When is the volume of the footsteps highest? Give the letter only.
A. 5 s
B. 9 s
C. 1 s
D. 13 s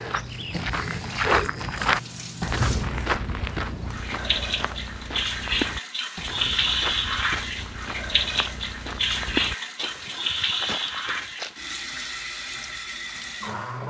C.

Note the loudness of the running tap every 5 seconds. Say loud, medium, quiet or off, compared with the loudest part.
medium, loud, loud.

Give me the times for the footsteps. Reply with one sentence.
You can hear the footsteps from 0.0 to 11.6 s.